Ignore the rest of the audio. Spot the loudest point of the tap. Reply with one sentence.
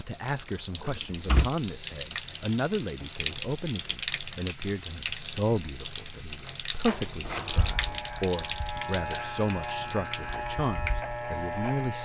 The volume of the tap peaks at 4 seconds.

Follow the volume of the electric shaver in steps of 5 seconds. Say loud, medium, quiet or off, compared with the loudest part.
off, loud, loud.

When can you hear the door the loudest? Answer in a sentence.
The loudest moment of the door is at 1 second.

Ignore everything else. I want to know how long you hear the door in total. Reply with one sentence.
You can hear the door for 2 seconds altogether.